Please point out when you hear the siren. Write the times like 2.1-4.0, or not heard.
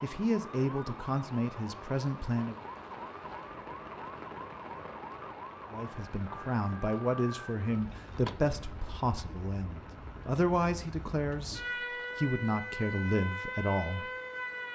0.0-14.7.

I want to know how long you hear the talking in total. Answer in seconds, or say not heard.
11 s.